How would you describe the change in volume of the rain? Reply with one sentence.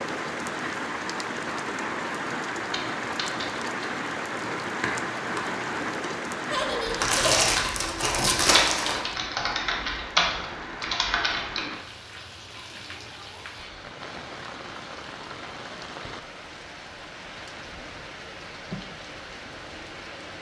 The volume of the rain goes down.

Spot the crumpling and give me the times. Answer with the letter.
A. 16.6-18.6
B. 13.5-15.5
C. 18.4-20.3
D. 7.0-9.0
D.